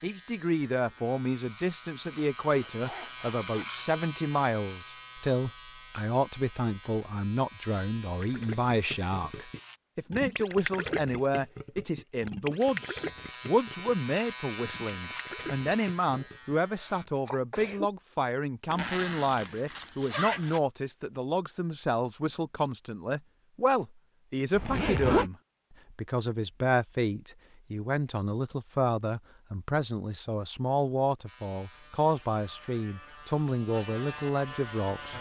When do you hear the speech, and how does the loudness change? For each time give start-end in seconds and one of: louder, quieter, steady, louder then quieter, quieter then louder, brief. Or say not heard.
0.0-35.1 steady.